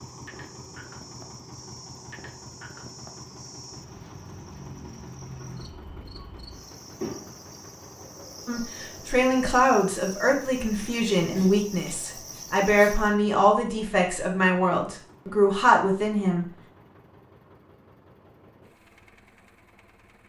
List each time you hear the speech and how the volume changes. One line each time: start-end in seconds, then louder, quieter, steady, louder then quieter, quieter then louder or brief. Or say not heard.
8.4-16.4 steady.